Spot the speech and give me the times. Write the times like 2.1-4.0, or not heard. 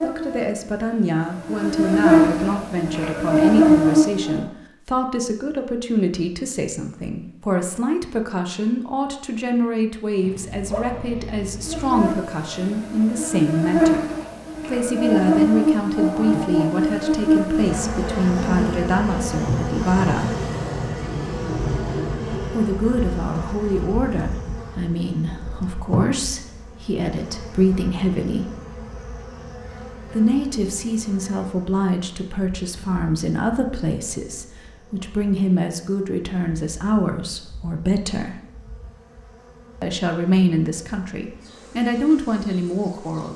0.0-14.1, 14.7-20.3, 22.5-28.5, 30.1-38.4, 39.8-43.3.